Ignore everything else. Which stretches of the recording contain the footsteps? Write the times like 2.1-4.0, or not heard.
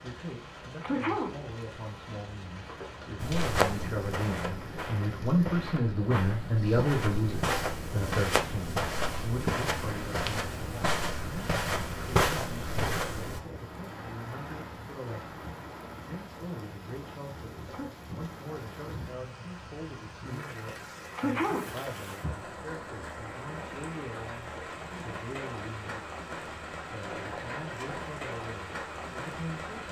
3.2-13.4.